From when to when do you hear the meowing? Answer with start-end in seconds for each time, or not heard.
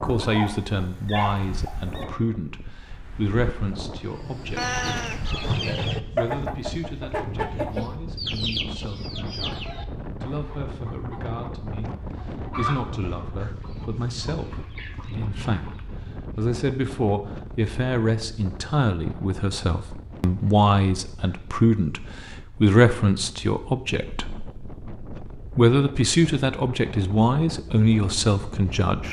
4.5-5.3.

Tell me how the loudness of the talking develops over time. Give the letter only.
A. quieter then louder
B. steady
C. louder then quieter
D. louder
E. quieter
A.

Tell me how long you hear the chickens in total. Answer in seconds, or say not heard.
12 s.